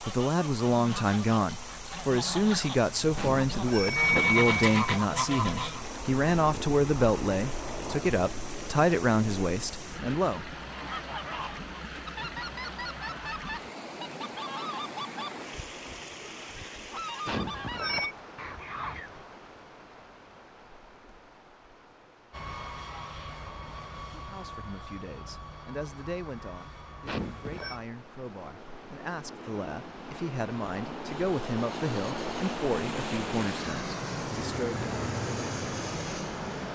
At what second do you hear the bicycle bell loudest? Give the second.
4 s.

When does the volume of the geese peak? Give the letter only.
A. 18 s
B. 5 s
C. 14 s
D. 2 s
B.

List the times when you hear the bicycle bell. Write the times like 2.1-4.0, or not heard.
3.1-4.8, 17.2-18.1, 27.1-27.8.